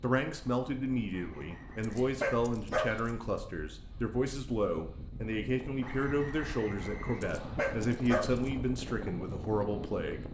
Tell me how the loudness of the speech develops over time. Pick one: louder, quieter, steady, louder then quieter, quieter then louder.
steady.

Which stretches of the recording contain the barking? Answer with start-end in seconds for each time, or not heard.
1.8-3.2, 7.2-8.6.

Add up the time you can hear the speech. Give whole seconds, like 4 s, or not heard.
10 s.